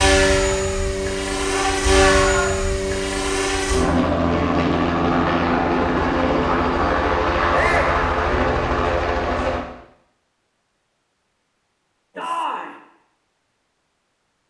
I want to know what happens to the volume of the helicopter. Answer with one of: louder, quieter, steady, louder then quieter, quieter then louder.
steady.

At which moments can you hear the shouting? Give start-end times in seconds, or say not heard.
1.5-2.8, 7.5-8.0, 12.2-12.8.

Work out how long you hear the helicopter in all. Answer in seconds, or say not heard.
10 s.